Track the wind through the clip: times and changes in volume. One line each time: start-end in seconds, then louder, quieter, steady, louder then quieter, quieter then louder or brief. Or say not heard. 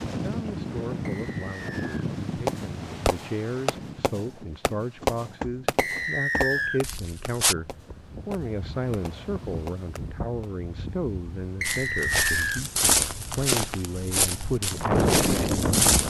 0.0-16.0 quieter then louder.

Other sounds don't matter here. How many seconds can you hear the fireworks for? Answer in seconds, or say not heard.
8 s.